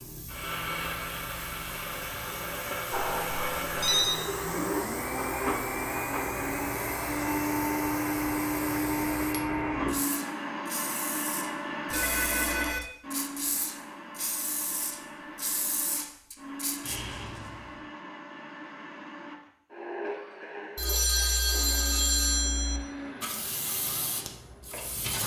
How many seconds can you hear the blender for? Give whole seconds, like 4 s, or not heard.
25 s.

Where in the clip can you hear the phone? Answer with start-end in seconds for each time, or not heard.
2.9-4.2, 11.9-12.8, 20.8-22.8.